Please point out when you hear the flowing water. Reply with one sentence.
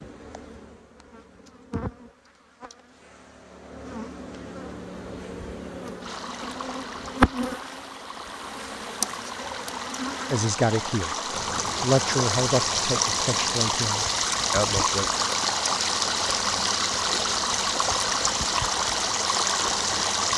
You can hear the flowing water from 6.0 to 20.3 s.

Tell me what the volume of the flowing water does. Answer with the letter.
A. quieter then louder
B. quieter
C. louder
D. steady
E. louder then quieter
C.